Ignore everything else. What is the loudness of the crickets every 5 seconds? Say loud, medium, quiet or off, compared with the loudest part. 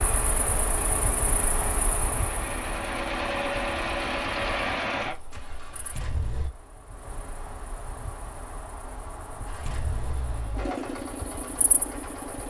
loud, medium, medium.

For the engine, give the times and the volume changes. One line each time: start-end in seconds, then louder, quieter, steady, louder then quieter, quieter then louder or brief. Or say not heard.
0.0-6.5 louder then quieter
9.4-12.4 brief.